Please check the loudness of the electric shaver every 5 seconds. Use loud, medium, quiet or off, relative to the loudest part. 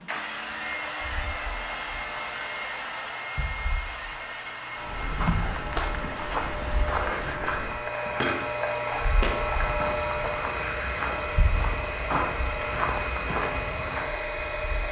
medium, loud, loud.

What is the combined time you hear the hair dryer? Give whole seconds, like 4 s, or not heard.
15 s.